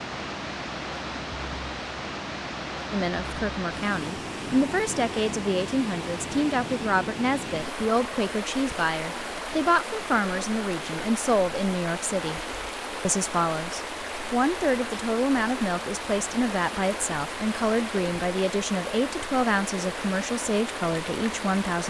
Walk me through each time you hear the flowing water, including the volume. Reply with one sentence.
The flowing water can be heard from 0.0 to 21.8 s, at a steady volume.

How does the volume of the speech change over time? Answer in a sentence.
The volume of the speech stays about the same.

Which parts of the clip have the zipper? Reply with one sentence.
The zipper can't be heard in this clip.